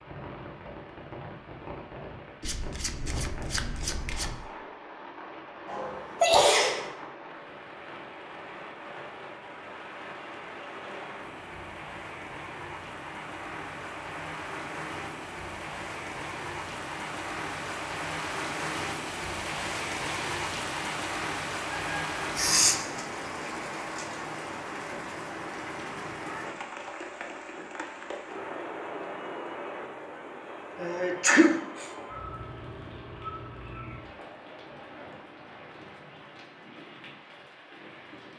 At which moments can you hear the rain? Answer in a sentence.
The rain can be heard from 0.0 to 38.3 s.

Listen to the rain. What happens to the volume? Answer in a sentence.
The volume of the rain goes up, then down.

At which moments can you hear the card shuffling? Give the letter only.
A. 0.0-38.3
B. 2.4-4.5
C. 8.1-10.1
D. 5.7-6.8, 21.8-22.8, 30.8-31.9
B.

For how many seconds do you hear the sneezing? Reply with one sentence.
You can hear the sneezing for 3 seconds altogether.